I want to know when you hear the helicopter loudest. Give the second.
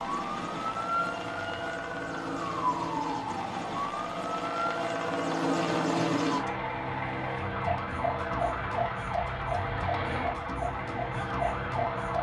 6 s.